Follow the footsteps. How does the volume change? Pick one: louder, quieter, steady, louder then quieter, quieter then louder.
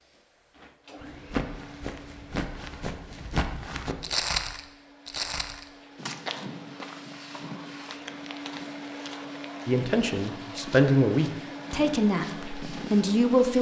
quieter.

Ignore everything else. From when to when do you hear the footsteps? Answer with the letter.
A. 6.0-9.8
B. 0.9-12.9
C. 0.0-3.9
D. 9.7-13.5
B.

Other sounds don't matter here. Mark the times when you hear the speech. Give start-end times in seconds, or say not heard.
9.7-13.5.